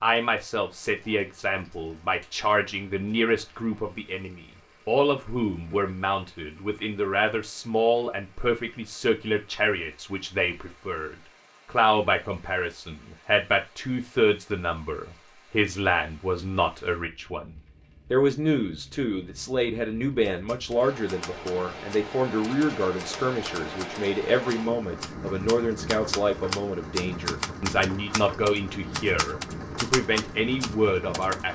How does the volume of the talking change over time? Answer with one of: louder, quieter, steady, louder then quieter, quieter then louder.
steady.